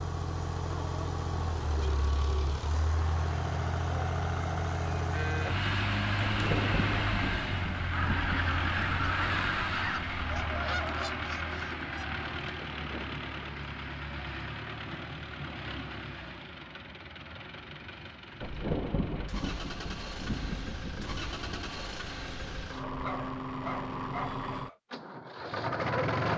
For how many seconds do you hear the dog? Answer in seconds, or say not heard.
2 s.